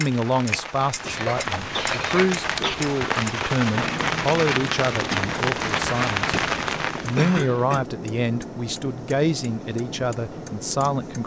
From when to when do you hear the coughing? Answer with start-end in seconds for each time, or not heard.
1.0-2.8, 7.2-7.8.